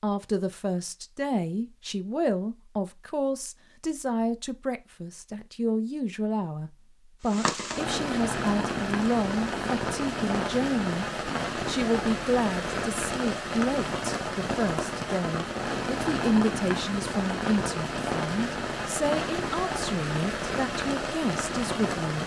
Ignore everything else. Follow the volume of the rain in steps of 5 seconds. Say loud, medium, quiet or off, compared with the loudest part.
off, loud, loud, loud, loud.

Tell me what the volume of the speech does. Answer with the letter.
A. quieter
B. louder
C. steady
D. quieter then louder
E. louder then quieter
C.